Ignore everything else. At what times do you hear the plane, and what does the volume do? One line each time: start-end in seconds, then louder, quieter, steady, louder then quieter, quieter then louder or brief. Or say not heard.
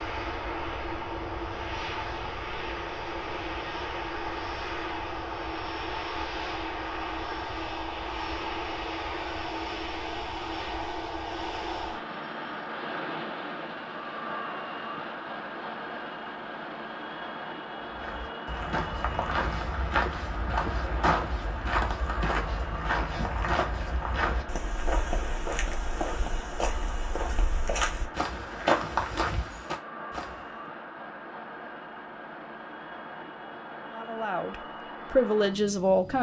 0.0-36.1 quieter.